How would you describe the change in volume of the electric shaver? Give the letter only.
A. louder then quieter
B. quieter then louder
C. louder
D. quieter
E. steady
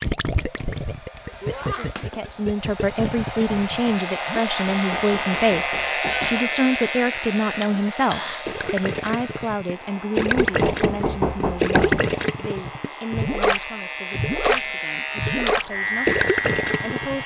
B.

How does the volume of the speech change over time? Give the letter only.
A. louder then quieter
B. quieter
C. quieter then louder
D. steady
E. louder
B.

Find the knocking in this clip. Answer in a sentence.
You can hear the knocking from 4.7 to 6.5 s and from 10.3 to 12.1 s.